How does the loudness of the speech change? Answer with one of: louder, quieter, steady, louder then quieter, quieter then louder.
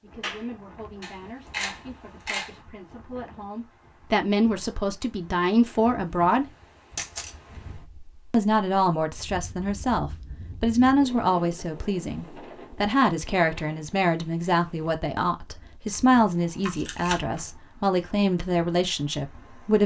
louder.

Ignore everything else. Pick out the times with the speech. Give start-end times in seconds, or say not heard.
0.0-6.5, 8.3-19.8.